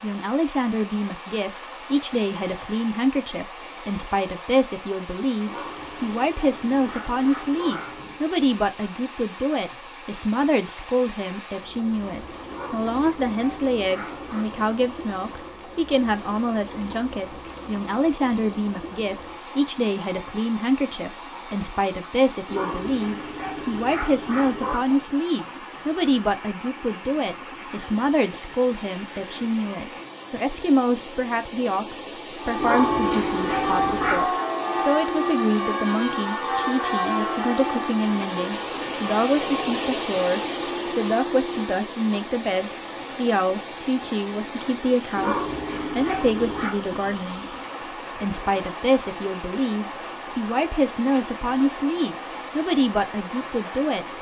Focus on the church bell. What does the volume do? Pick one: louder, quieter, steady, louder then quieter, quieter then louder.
quieter.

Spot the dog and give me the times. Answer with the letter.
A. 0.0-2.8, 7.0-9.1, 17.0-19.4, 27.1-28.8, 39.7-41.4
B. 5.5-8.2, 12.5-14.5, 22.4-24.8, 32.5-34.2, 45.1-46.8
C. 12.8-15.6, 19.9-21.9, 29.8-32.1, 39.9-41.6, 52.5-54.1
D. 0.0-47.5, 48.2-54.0
B.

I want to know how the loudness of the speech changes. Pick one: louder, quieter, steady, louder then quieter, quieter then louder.
steady.